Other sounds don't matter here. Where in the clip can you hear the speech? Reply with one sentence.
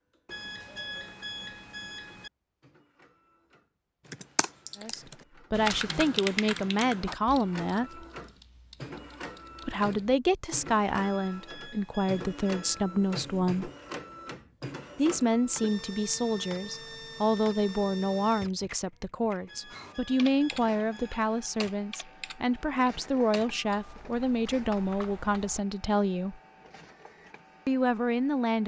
You can hear the speech from 4.8 to 8.1 s, from 9.7 to 13.7 s, from 14.9 to 26.4 s and from 27.6 to 28.6 s.